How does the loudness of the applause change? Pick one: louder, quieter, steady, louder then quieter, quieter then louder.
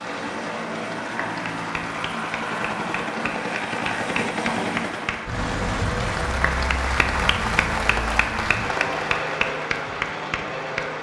louder.